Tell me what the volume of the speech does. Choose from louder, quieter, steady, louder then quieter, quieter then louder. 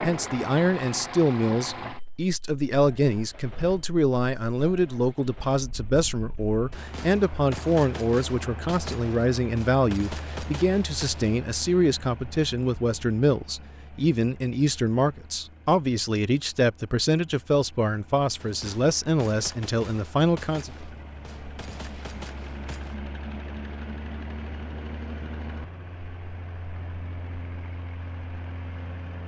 steady.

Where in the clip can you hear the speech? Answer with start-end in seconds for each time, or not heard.
0.0-20.7.